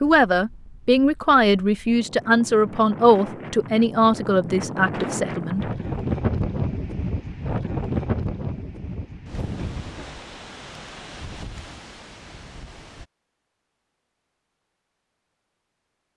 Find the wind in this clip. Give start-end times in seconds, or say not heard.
0.0-13.1.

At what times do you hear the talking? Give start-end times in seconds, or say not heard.
0.0-5.7.